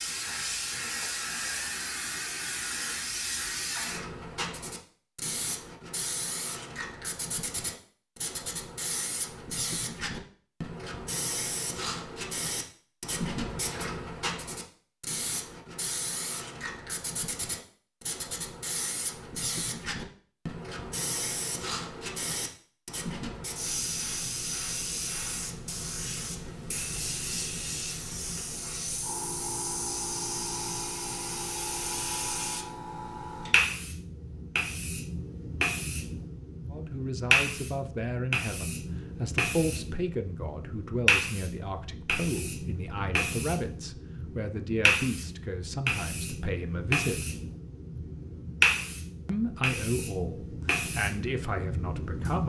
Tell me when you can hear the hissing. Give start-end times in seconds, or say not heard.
0.0-52.4.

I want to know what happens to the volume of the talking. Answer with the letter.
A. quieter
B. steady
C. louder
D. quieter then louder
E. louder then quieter
B.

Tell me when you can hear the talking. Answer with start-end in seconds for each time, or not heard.
36.7-47.2, 49.2-52.4.